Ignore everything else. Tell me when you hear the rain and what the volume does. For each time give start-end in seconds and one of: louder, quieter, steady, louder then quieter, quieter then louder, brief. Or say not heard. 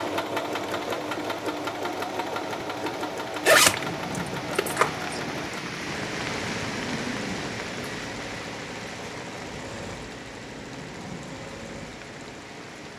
0.0-12.9 louder then quieter.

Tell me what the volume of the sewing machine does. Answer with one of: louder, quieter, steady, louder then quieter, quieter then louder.
quieter.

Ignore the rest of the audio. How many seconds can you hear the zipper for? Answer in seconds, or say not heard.
2 s.